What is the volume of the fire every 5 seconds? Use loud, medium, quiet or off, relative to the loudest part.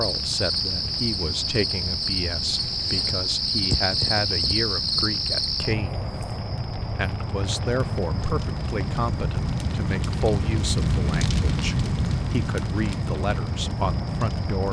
quiet, medium, loud.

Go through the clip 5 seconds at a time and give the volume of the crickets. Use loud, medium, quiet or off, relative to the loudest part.
loud, medium, quiet.